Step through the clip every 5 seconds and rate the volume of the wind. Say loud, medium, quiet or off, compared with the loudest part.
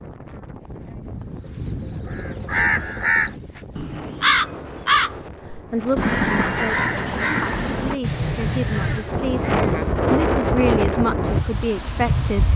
quiet, medium, loud.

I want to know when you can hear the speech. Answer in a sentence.
The speech can be heard from 5.7 to 12.5 s.